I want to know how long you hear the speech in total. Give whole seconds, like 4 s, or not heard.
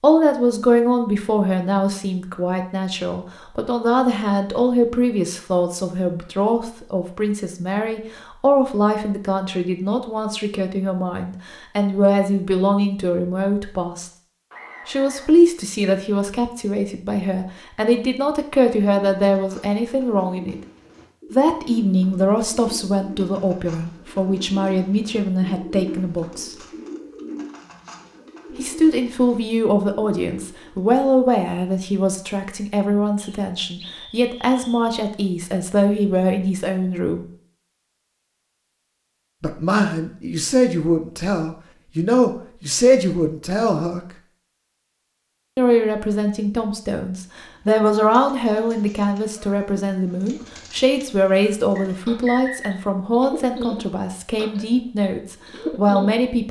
49 s.